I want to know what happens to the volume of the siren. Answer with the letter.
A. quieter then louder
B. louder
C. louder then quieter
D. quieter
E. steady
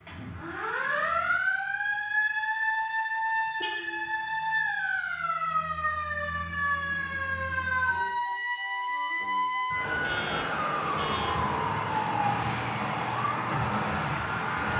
E.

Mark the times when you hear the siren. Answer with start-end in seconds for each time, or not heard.
0.0-14.7.